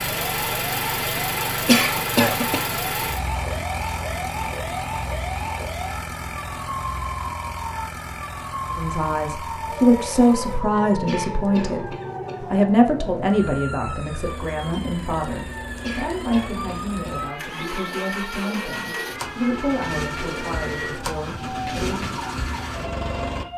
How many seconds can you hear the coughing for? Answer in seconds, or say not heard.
4 s.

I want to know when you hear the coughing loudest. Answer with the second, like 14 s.
2 s.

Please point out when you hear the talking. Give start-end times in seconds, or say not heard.
8.7-22.1.